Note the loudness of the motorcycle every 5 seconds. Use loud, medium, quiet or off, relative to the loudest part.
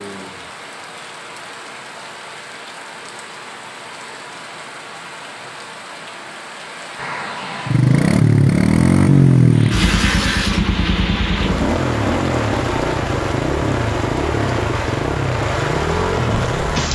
off, loud, medium, medium.